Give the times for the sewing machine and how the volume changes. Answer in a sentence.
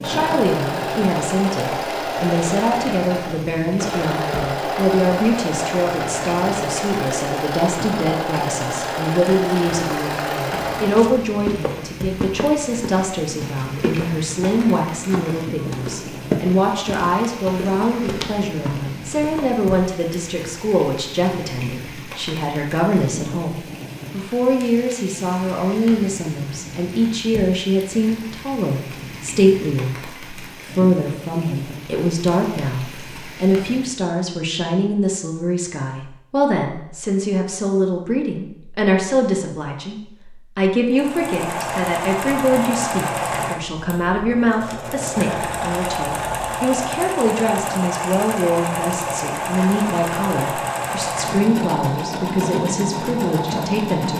The sewing machine can be heard from 0.0 to 11.2 s, at a steady volume; and from 40.9 to 54.1 s, at a steady volume.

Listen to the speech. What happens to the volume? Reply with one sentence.
The loudness of the speech stays about the same.